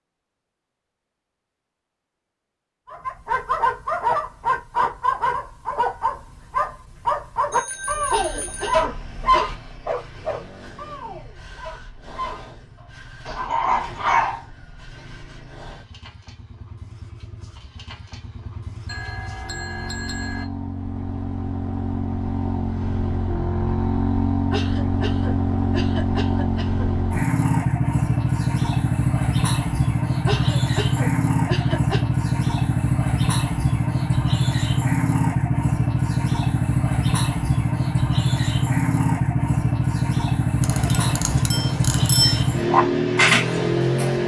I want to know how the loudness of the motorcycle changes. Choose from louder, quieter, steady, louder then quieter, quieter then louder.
louder.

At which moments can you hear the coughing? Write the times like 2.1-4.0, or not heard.
8.1-9.6, 24.5-26.9, 30.2-32.0.